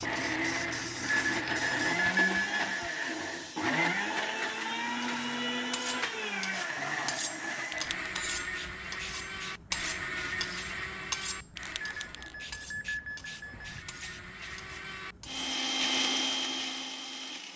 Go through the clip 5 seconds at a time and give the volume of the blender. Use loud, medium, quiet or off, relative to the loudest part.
loud, loud, medium, loud.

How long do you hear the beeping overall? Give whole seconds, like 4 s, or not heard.
4 s.